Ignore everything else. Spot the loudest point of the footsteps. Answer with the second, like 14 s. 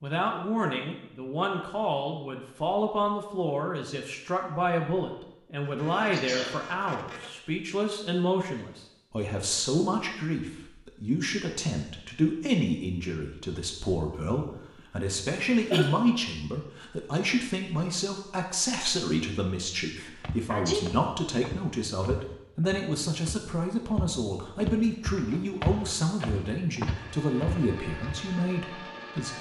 26 s.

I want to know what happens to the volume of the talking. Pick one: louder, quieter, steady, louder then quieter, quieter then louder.
steady.